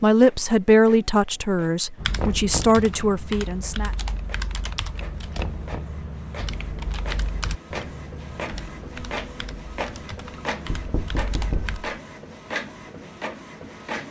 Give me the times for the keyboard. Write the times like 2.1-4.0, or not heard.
1.9-11.8.